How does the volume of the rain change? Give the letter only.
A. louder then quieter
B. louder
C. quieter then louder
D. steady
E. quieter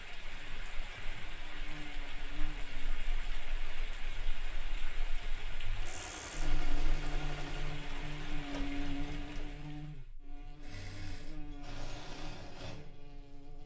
D.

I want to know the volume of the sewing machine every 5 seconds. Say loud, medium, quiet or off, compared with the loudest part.
off, loud, loud.